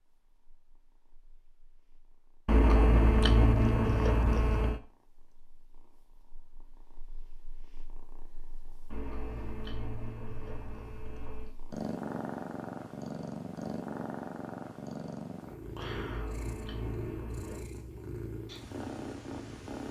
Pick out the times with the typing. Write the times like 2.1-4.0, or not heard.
not heard.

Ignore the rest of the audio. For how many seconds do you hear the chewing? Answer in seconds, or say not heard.
7 s.